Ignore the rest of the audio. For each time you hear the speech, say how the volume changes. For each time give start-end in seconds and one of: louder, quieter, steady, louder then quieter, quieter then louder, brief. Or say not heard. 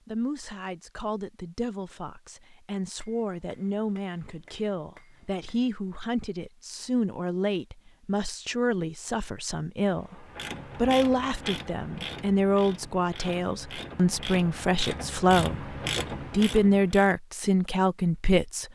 0.1-18.7 louder.